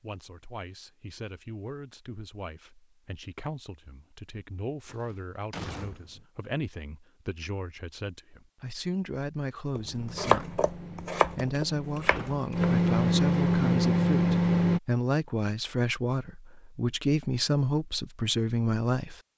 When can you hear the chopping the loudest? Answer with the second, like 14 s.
10 s.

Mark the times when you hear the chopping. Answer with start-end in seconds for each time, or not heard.
9.8-12.8.